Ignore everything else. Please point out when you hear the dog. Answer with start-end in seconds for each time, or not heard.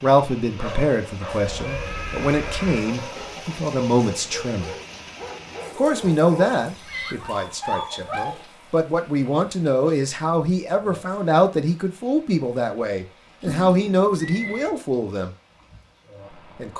0.6-8.4.